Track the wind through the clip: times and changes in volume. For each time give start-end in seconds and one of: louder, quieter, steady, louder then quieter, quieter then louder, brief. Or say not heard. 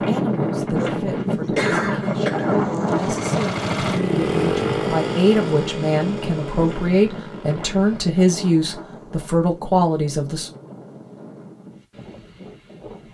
0.0-13.0 quieter.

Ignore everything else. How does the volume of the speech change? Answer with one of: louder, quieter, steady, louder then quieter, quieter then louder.
louder.